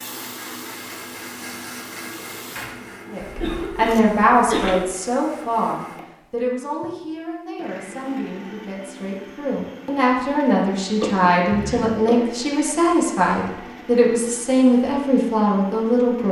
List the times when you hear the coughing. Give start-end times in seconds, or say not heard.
3.2-4.8, 11.0-12.3.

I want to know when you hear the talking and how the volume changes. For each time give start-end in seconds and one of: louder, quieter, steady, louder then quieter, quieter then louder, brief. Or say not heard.
3.1-16.2 quieter then louder.